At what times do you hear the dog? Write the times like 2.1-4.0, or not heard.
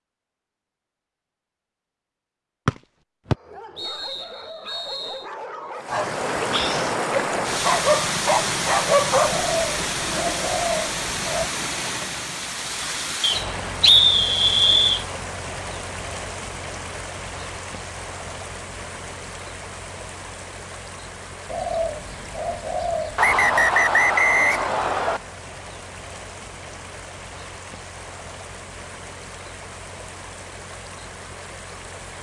3.3-10.5.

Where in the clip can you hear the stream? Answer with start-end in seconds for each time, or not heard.
5.8-32.1.